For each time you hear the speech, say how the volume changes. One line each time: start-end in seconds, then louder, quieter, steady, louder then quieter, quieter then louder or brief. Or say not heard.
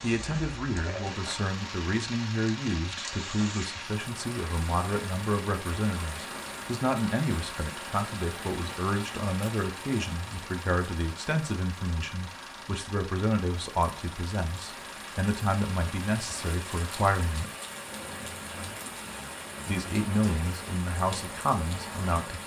0.0-17.5 steady
19.6-22.4 brief.